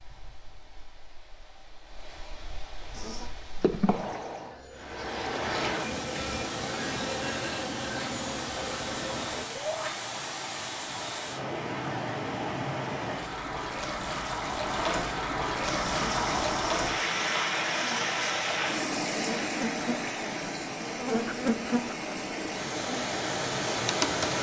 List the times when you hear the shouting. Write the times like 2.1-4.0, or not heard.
9.4-9.9.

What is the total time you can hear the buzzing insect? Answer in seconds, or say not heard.
15 s.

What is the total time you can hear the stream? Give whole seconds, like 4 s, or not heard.
24 s.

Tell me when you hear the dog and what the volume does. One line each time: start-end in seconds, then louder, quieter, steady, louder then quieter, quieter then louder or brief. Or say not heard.
not heard.